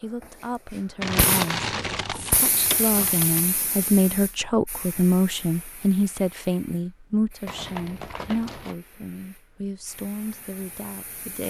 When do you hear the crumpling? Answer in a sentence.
The crumpling can be heard from 1.0 to 3.5 s and from 7.5 to 8.8 s.